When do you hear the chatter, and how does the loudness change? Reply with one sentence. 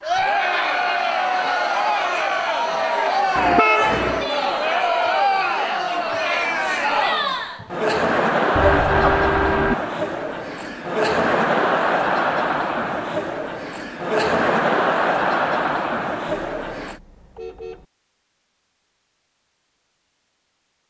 You can hear the chatter from 0.0 to 17.0 s, at a steady volume.